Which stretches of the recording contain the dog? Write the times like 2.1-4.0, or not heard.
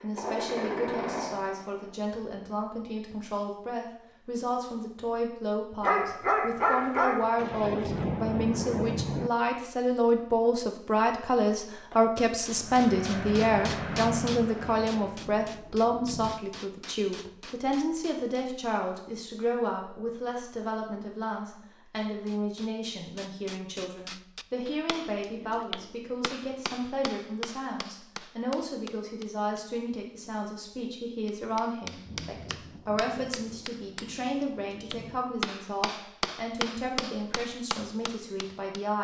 5.8-7.3.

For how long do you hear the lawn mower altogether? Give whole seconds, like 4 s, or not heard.
5 s.